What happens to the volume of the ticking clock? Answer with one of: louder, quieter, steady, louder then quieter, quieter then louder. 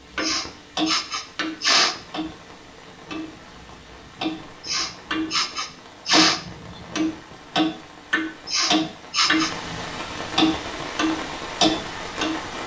quieter then louder.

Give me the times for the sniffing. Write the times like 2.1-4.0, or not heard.
0.2-1.9, 4.6-6.4, 8.4-9.5.